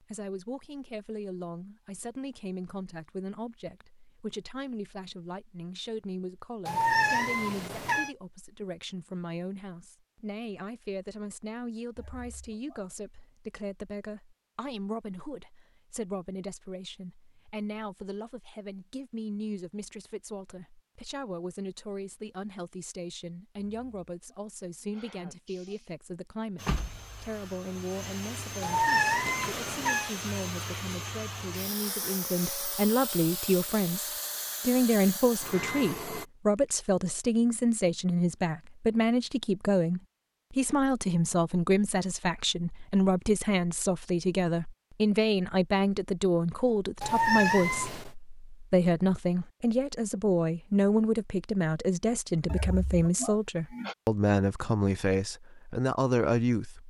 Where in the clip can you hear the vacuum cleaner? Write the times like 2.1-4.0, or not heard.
26.6-36.2.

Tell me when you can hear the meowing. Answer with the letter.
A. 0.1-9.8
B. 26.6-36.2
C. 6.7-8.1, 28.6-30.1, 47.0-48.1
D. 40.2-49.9
C.